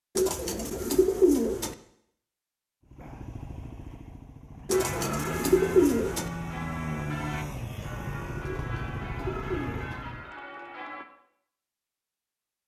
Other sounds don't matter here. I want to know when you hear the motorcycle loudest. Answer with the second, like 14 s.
7 s.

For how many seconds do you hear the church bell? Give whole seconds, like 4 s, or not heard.
6 s.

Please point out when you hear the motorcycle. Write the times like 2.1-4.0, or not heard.
2.9-10.3.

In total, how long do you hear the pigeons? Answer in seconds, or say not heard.
5 s.